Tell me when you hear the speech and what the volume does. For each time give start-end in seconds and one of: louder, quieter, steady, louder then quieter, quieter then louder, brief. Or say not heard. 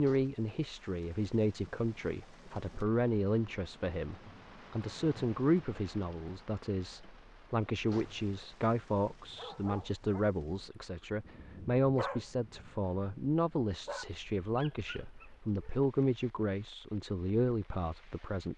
0.0-18.5 steady.